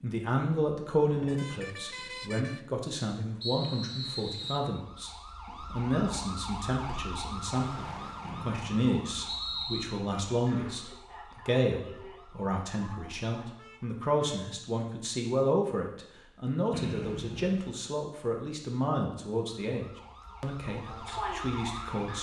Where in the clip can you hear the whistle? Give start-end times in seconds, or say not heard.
3.4-4.7, 8.2-9.8, 16.7-17.7.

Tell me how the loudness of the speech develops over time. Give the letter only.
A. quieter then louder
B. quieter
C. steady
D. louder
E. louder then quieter
C.